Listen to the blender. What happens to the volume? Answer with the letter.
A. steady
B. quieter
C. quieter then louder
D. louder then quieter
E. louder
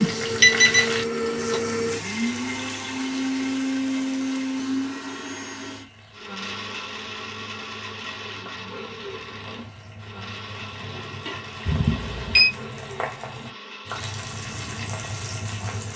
B.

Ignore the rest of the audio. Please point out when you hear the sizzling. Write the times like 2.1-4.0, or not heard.
0.0-15.9.